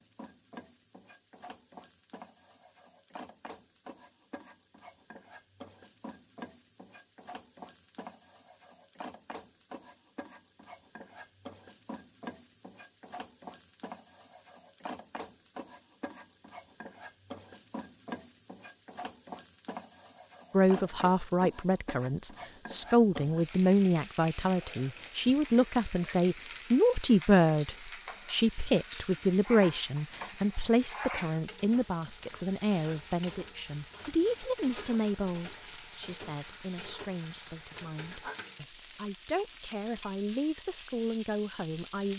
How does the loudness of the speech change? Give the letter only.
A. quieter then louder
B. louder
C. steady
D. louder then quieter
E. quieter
E.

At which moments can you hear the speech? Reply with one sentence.
You can hear the speech from 20.5 to 42.1 s.